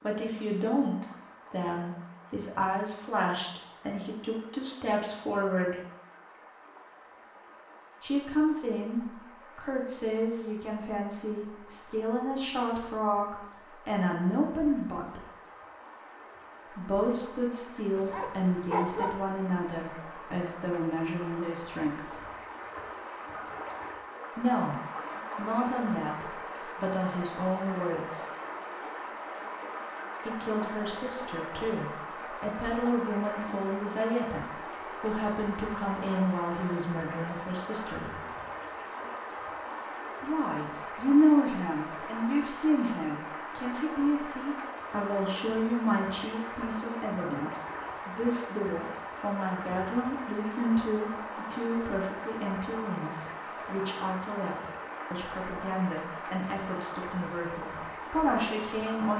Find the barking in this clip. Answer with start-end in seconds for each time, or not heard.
17.9-19.1.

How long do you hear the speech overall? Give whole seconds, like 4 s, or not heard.
49 s.